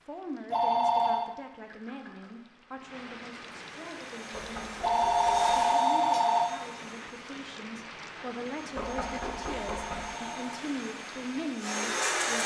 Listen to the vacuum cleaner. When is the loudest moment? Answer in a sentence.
The volume of the vacuum cleaner peaks at 12 seconds.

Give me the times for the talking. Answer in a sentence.
You can hear the talking from 0.1 to 12.4 s.